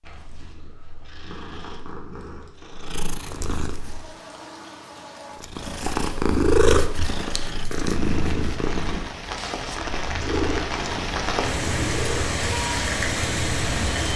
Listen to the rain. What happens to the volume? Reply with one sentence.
The volume of the rain goes up.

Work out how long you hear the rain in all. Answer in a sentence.
You can hear the rain for 10 seconds altogether.